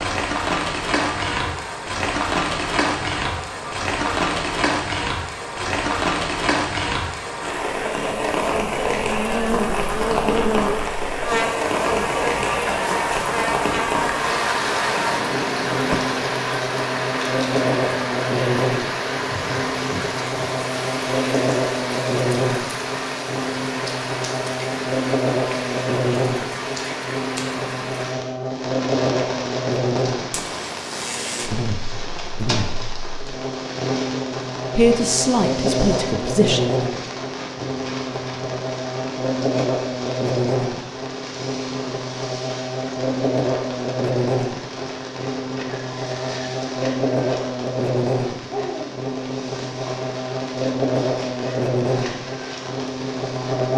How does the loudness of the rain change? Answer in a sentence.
The loudness of the rain goes down.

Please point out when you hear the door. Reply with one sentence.
You can hear the door from 15.0 to 16.1 s.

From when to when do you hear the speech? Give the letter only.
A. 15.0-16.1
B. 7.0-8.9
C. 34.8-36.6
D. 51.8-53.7
C.